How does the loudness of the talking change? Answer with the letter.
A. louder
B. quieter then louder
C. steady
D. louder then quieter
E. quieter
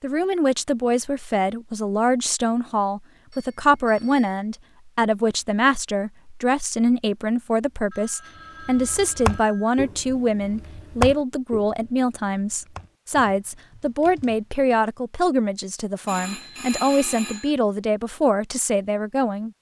C.